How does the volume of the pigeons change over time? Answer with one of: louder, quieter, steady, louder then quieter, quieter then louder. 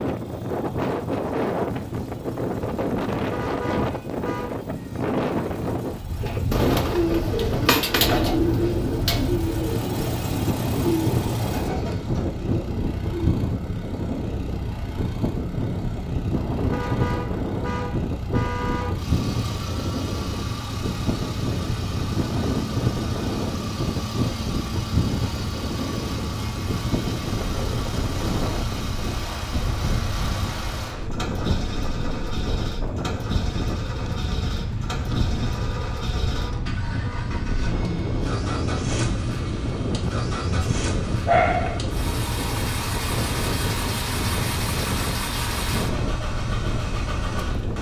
quieter.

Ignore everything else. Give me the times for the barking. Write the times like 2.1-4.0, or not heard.
40.5-41.8.